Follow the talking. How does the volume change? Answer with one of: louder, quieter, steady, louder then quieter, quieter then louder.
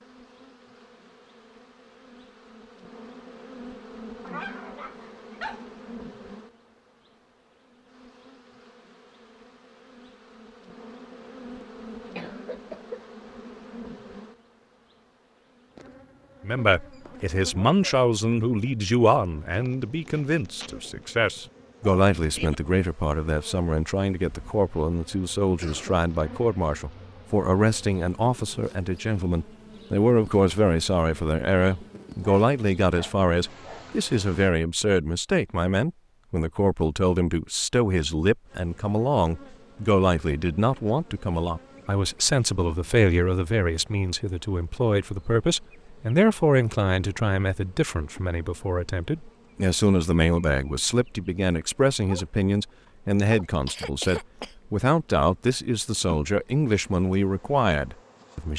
steady.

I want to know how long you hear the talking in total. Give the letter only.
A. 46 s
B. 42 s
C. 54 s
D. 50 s
B.